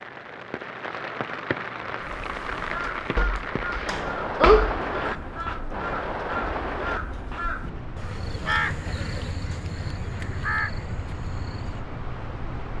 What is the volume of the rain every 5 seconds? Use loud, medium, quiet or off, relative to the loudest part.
loud, loud, medium.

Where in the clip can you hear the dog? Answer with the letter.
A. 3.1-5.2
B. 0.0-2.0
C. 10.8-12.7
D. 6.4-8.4
A.